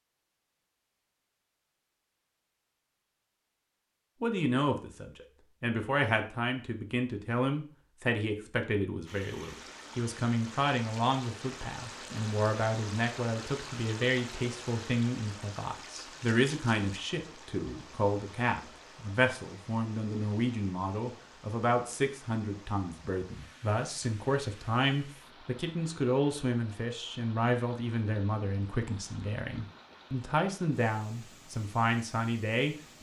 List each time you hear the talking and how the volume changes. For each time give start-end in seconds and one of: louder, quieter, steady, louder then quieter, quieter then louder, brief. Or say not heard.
4.2-32.8 steady.